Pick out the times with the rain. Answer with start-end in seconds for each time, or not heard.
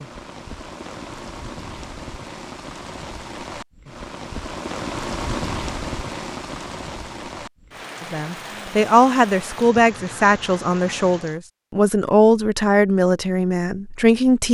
0.0-11.4.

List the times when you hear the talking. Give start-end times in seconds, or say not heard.
8.0-14.4.